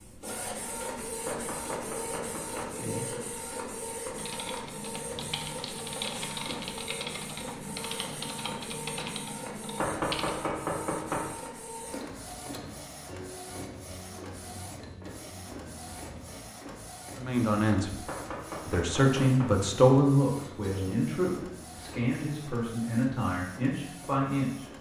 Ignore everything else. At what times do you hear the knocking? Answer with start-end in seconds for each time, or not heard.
1.2-2.8, 9.8-11.3, 18.1-19.6.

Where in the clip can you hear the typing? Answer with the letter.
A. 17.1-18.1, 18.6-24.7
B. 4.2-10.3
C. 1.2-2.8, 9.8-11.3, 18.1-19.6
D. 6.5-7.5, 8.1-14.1
B.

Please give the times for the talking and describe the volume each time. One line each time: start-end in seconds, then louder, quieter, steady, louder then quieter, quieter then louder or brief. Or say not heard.
17.1-18.1 brief
18.6-24.7 quieter.